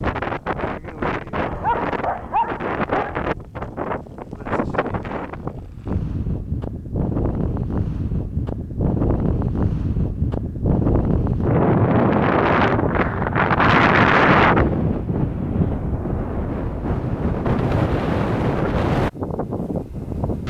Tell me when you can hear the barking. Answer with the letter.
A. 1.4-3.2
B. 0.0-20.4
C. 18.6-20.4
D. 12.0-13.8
A.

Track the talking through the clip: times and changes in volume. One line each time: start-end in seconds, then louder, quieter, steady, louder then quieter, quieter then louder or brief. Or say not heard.
not heard.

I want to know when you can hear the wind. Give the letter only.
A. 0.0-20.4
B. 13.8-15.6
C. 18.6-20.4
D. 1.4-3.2
A.